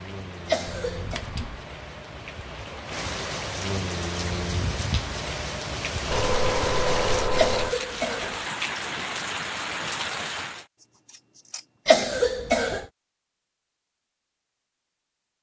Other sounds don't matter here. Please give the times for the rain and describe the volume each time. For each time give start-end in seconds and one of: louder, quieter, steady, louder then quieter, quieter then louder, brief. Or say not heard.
0.0-10.7 louder.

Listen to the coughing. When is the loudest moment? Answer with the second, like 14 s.
12 s.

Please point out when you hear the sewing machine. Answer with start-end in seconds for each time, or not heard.
not heard.